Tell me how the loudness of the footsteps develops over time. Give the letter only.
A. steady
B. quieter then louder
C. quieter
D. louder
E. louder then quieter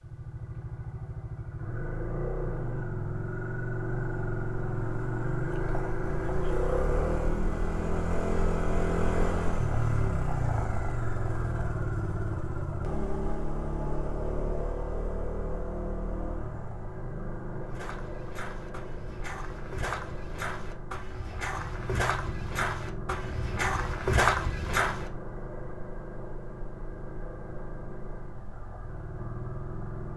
D.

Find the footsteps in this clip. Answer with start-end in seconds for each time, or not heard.
17.5-25.1.